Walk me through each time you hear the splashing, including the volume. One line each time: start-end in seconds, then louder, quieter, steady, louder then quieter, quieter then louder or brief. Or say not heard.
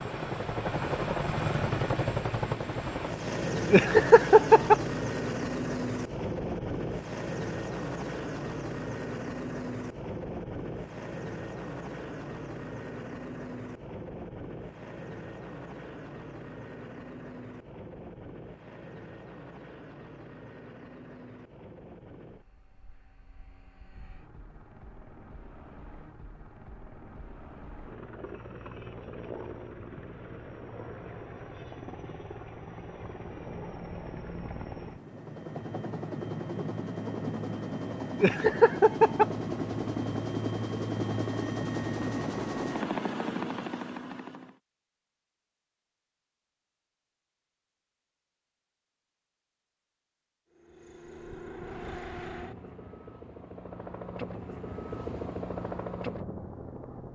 not heard.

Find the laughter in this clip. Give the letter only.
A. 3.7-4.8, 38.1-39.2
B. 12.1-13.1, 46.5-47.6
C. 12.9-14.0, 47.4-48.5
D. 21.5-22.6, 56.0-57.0
A.